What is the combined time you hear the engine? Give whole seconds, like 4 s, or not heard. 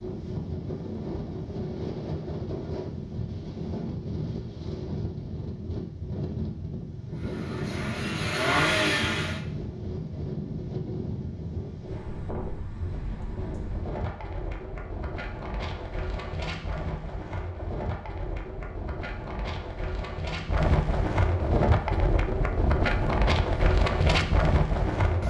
2 s.